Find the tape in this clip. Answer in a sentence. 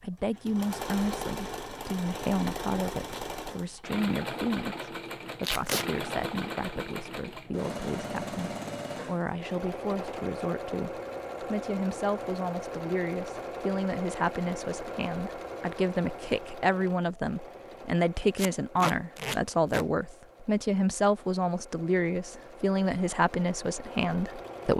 The tape can be heard from 5.4 to 5.8 s and from 18.4 to 19.9 s.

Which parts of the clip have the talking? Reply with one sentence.
You can hear the talking from 0.0 to 24.7 s.